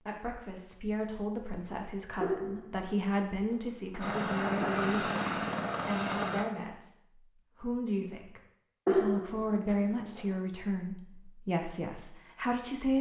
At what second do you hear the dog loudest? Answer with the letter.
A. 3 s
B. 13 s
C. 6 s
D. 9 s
D.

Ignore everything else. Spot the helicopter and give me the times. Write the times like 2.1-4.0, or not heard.
4.0-6.5.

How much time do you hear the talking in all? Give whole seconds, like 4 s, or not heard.
12 s.